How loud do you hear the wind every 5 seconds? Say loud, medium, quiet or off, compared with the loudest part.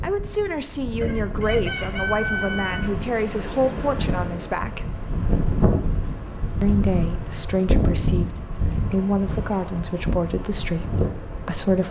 medium, loud, loud.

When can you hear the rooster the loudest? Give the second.
2 s.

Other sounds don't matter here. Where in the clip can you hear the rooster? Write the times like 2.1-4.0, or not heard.
1.0-2.9.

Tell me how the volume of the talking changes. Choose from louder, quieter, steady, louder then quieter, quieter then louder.
steady.